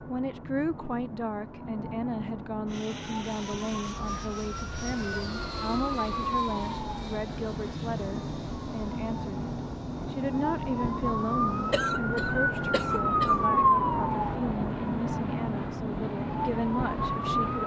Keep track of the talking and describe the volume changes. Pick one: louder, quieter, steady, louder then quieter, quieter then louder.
steady.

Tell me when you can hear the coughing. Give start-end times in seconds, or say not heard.
11.7-13.4.